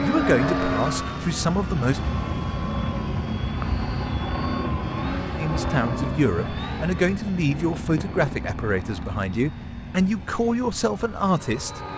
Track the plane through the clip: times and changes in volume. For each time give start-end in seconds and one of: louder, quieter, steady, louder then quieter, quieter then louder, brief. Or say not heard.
0.0-11.9 quieter.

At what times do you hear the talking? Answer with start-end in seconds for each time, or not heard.
0.0-2.0, 5.3-11.8.